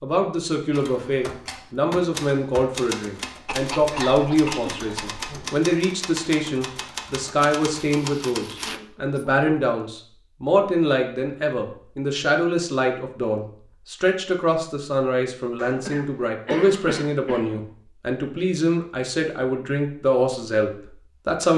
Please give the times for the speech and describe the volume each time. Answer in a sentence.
The speech can be heard from 0.0 to 21.5 s, at a steady volume.